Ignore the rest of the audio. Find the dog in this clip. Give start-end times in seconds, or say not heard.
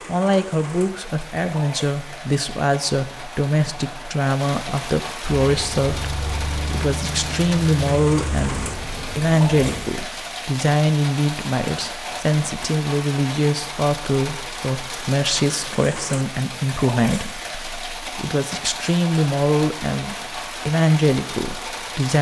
not heard.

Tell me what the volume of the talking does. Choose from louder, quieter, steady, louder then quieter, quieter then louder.
steady.